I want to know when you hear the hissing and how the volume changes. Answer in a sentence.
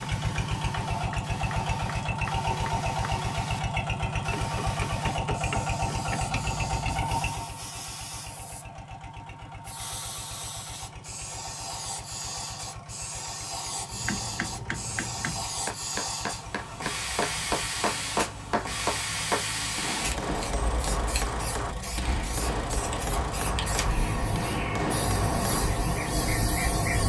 The hissing can be heard from 0.0 to 27.0 s, getting louder.